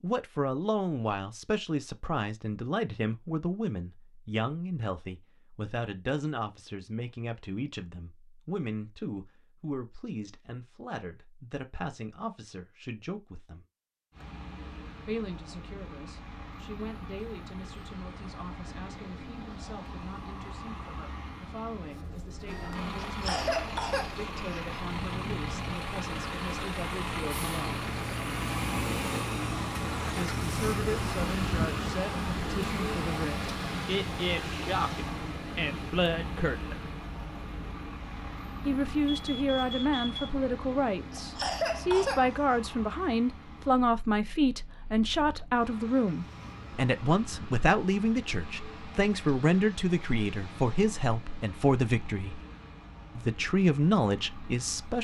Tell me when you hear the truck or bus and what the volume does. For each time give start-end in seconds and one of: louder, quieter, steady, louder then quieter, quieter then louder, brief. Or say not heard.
14.1-55.0 louder then quieter.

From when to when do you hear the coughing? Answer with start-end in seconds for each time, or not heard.
23.0-24.8, 41.1-42.3.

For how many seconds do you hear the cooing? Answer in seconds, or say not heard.
not heard.